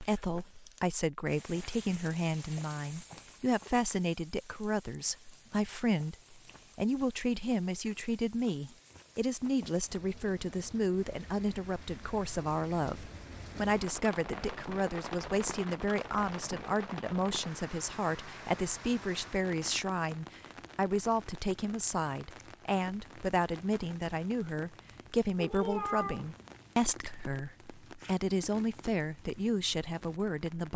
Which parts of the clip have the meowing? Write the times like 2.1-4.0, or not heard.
25.4-26.3.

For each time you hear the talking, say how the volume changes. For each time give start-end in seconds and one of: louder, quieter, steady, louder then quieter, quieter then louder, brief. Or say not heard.
0.0-30.7 steady.